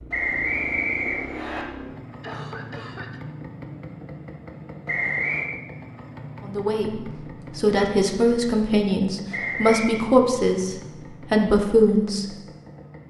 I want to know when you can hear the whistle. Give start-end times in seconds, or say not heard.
0.1-1.6, 4.8-5.5, 9.3-10.0.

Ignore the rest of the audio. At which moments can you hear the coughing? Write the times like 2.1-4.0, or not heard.
2.2-3.2.